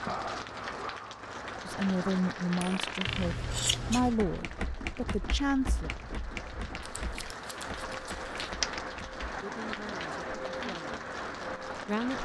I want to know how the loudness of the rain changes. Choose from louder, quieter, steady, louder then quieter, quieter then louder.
quieter then louder.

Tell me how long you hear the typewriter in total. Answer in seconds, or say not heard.
5 s.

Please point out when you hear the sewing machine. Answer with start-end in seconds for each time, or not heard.
not heard.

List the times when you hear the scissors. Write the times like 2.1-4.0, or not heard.
3.0-4.2, 7.0-8.5.